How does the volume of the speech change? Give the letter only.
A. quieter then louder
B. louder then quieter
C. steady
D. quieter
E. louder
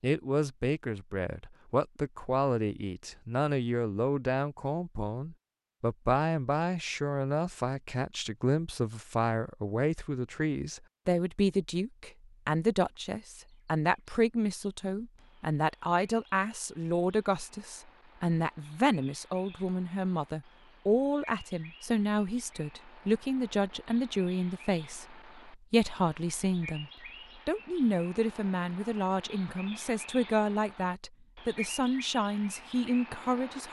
C.